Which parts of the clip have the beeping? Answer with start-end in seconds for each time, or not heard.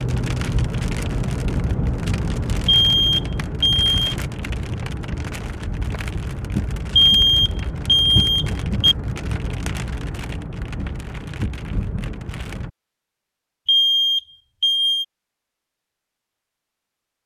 2.6-4.0, 7.0-8.9, 13.7-15.1.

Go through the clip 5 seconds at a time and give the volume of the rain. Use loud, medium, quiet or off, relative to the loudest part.
loud, loud, medium, off.